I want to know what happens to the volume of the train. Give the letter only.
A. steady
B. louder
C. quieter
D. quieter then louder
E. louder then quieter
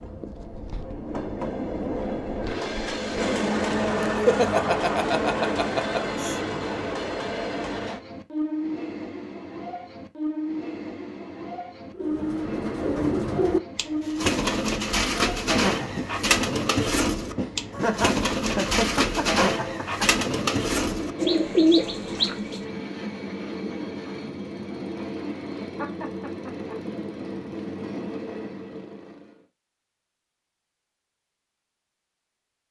C.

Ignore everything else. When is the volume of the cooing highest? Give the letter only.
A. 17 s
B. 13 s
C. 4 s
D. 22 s
D.